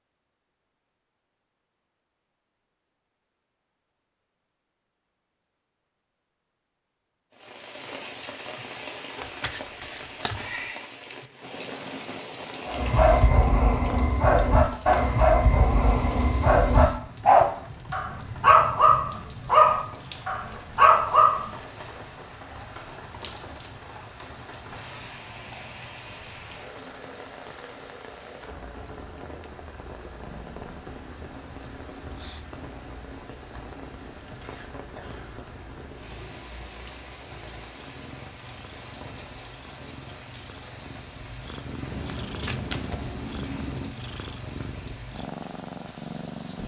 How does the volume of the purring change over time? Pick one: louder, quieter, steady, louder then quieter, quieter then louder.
louder.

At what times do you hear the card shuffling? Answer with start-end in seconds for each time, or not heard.
9.2-10.7, 41.9-43.9.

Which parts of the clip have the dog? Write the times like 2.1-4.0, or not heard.
12.7-21.4.